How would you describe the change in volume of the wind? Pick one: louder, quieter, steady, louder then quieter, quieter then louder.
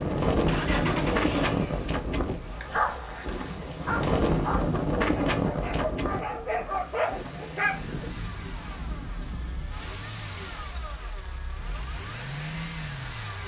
quieter.